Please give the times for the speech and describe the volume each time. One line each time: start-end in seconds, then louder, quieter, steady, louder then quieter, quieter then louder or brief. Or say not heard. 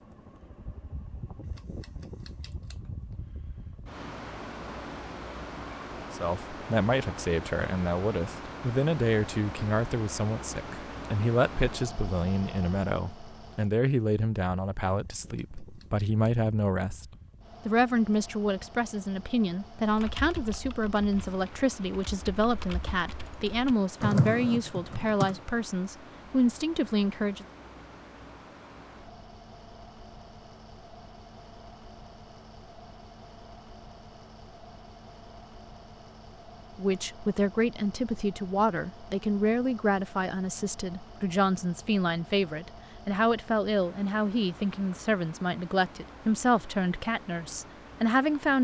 6.1-17.1 steady
17.6-27.4 steady
36.8-48.5 steady.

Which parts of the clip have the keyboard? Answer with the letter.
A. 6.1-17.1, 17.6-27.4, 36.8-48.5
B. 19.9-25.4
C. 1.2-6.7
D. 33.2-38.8
B.